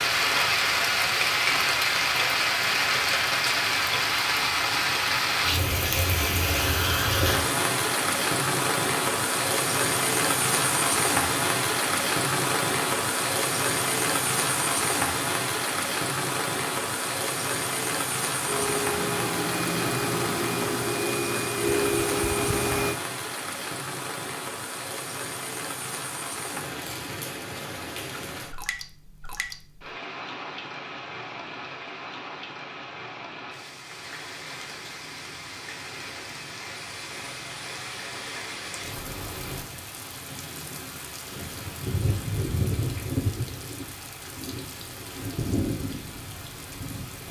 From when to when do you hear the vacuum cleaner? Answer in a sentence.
You can hear the vacuum cleaner from 18.4 to 23.0 s.